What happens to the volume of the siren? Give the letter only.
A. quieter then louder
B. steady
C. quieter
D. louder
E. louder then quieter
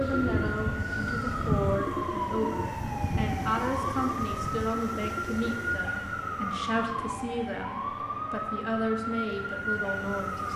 B.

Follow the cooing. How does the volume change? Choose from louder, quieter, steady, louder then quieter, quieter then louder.
louder then quieter.